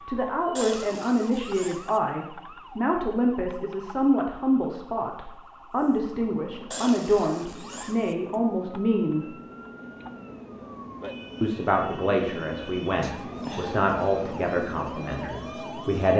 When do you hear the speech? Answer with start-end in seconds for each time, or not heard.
0.1-9.3, 11.4-16.1.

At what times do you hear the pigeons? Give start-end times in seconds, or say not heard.
not heard.